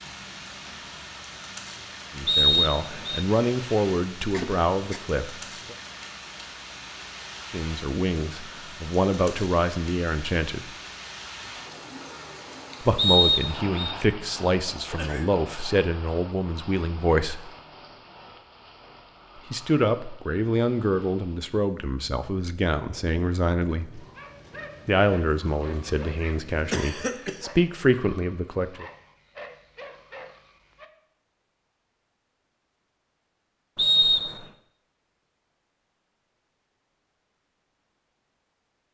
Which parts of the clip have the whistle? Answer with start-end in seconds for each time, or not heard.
2.2-3.2, 12.9-13.9, 33.8-34.5.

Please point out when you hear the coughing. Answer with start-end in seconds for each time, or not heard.
4.3-5.0, 14.3-15.3, 26.7-27.4.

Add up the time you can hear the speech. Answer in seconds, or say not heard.
20 s.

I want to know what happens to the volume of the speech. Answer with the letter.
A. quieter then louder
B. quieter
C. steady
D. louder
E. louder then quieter
C.